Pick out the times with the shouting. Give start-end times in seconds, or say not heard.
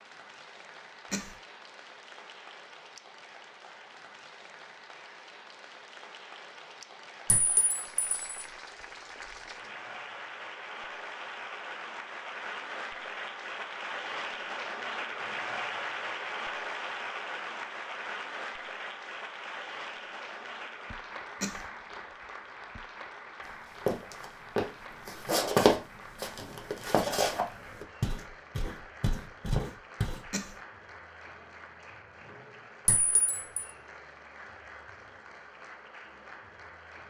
not heard.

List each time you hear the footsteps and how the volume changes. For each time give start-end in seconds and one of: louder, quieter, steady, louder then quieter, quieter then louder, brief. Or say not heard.
23.5-30.3 louder then quieter.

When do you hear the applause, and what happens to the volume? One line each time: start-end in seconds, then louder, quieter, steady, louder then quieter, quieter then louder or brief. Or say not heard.
0.0-37.0 louder then quieter.